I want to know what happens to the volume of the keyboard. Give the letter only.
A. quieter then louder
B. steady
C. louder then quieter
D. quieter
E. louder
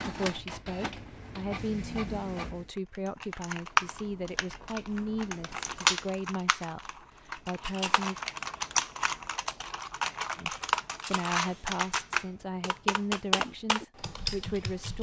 B.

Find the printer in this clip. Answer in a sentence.
The printer can be heard from 0.0 to 2.7 s.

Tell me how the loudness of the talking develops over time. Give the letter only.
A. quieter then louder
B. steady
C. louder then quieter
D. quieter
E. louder
B.